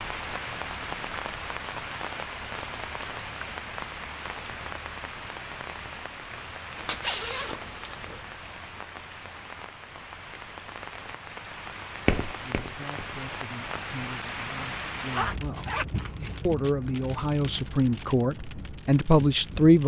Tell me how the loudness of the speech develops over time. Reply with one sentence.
The volume of the speech goes up.